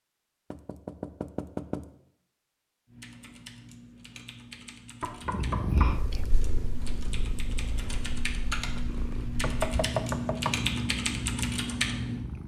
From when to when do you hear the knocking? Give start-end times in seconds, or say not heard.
0.5-1.9, 5.0-6.0, 9.4-10.7.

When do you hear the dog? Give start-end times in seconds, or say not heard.
not heard.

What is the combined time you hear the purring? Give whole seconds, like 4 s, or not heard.
7 s.